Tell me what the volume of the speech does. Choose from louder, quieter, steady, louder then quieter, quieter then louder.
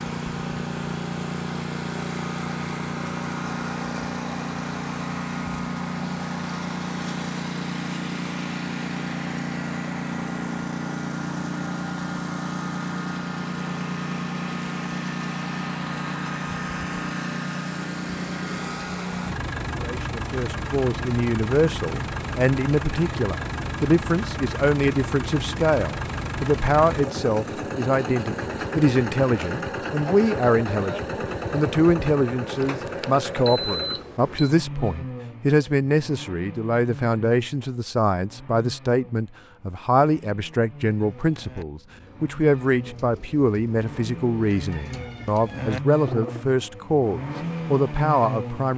steady.